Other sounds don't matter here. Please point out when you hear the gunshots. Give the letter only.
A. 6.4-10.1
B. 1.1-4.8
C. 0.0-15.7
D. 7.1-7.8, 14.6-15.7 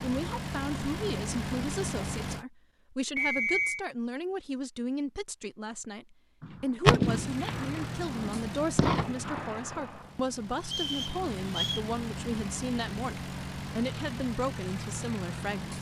A.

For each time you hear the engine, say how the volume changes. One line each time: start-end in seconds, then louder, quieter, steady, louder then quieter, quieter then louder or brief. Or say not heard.
0.0-2.5 brief
7.0-15.7 quieter then louder.